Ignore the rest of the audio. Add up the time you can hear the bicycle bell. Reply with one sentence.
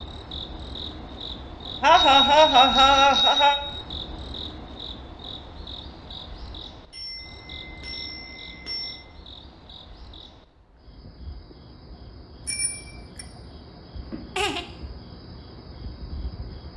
The bicycle bell can be heard for 5 seconds in total.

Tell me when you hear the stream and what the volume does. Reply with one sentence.
You can't hear the stream here.